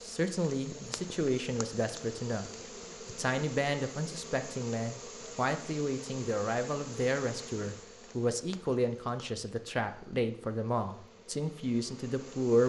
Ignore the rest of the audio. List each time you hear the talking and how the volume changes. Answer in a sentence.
The talking can be heard briefly from 0.0 to 2.5 s; and from 3.0 to 12.6 s, at a steady volume.